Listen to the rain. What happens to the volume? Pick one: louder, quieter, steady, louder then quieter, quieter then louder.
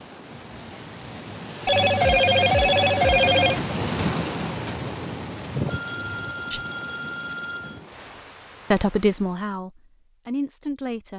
louder then quieter.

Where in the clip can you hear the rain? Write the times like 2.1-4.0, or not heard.
0.0-9.4.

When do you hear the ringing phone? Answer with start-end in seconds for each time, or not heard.
1.6-3.6, 5.7-7.8.